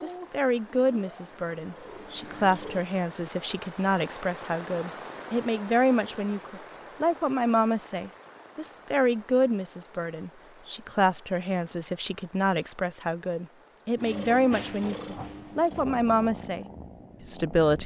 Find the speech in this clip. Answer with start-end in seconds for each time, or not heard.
0.0-16.6, 17.2-17.8.